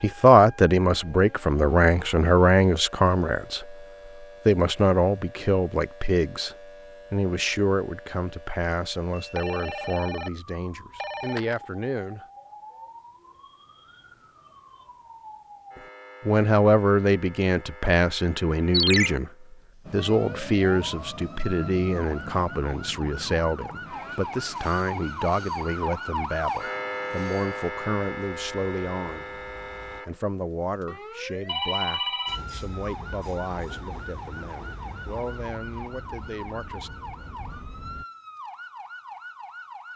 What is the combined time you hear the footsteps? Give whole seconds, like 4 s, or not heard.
not heard.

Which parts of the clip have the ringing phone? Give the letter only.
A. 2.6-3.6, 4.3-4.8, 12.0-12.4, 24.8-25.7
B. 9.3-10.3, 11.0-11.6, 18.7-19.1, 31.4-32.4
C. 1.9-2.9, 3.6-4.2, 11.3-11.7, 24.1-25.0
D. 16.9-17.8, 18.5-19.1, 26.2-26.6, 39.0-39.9
B.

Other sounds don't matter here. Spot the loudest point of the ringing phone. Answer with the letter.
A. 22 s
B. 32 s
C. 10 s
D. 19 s
D.